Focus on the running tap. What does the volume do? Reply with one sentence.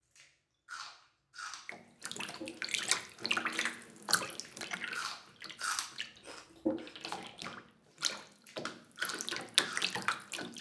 The volume of the running tap goes down, then up.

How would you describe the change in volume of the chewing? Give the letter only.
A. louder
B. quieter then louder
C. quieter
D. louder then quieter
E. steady
D.